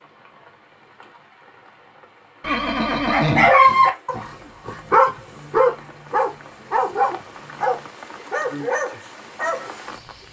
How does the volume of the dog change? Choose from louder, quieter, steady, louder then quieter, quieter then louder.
quieter.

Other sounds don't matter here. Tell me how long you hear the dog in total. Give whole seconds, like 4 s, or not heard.
7 s.